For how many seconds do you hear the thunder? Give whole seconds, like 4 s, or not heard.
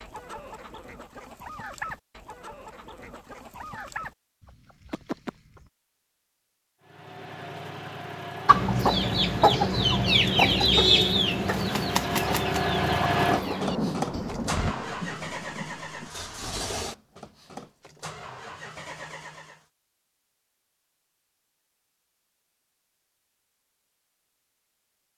3 s.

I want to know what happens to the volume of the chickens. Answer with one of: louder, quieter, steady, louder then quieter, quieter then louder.
louder then quieter.